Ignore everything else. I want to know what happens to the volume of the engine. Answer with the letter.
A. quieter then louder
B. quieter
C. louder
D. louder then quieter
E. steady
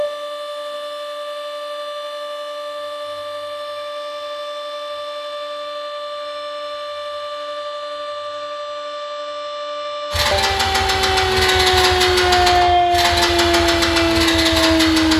E.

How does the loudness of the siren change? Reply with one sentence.
The loudness of the siren goes up.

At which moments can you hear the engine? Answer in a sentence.
You can hear the engine from 10.1 to 15.1 s.